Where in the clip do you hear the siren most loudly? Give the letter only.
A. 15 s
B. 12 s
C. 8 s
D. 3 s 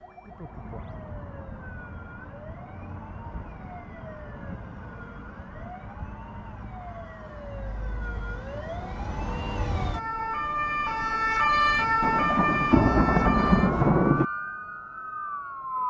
B.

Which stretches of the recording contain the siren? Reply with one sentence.
You can hear the siren from 0.0 to 15.8 s.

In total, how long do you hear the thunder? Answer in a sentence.
The thunder can be heard for 2 seconds in total.